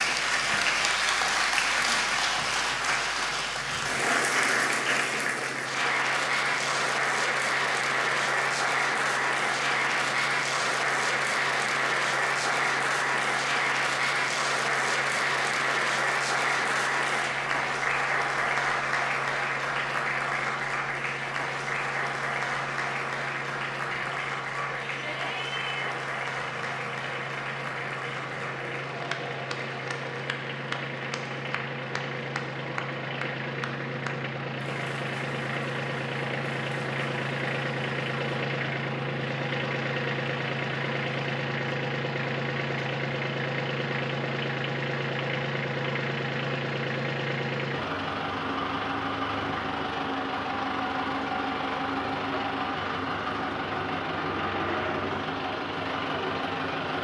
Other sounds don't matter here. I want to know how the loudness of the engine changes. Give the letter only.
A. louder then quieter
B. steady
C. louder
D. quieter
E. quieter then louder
C.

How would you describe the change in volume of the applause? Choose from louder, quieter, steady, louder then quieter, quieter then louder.
quieter.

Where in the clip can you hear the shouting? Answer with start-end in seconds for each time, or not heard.
24.6-25.9.